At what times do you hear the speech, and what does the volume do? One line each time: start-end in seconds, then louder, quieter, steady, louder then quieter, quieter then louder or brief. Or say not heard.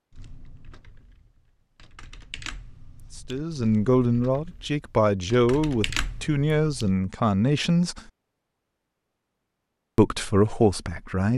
3.1-8.0 steady
9.9-11.3 brief.